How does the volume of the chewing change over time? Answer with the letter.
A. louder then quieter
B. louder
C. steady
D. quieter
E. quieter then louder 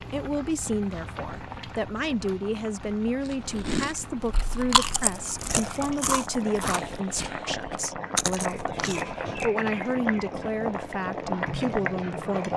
E.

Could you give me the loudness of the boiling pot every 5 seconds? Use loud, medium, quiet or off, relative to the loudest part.
medium, loud, loud.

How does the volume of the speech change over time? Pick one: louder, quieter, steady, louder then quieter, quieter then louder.
steady.